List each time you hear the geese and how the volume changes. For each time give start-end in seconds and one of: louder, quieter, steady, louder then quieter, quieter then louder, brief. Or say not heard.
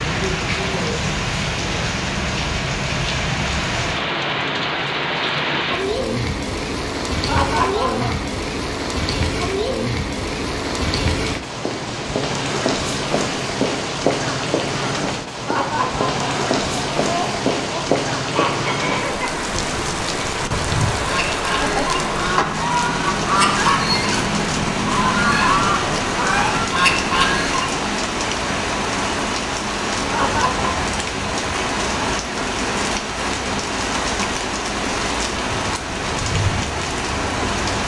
18.2-27.9 louder.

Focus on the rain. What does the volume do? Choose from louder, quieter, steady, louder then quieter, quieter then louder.
steady.